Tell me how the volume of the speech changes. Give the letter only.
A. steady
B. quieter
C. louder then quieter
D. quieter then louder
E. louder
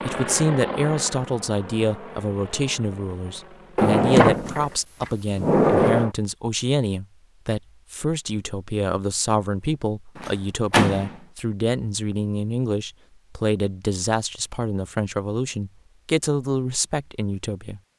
A.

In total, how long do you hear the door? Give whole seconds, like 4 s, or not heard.
3 s.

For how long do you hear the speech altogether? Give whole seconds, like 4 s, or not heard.
18 s.